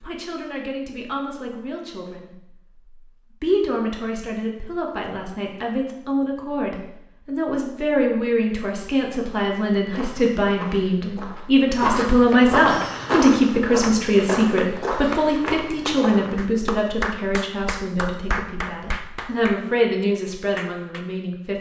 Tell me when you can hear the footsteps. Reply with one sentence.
The footsteps can be heard from 9.9 to 16.4 s.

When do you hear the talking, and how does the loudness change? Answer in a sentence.
The talking can be heard briefly from 0.0 to 2.4 s; and from 3.4 to 21.5 s, getting louder then quieter.